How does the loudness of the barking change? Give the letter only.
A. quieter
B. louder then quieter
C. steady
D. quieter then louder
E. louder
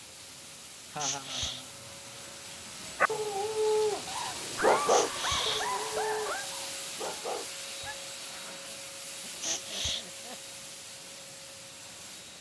A.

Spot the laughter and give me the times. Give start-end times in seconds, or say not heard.
0.9-2.3, 4.5-6.5, 8.4-10.6.